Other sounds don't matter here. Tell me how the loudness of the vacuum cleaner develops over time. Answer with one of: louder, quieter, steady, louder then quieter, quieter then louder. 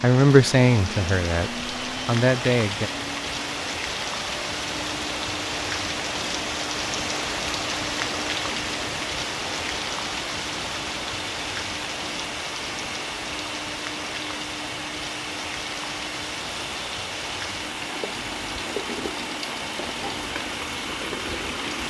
steady.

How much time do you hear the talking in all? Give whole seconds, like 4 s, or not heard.
3 s.